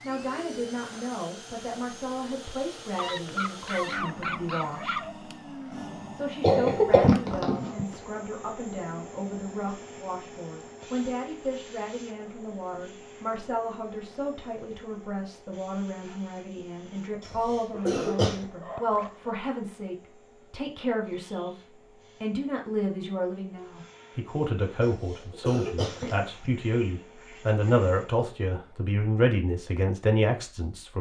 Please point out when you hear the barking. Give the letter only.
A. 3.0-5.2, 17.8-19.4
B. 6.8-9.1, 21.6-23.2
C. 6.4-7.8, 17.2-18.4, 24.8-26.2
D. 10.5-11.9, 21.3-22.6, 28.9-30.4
A.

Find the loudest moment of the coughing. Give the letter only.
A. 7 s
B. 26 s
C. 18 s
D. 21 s
A.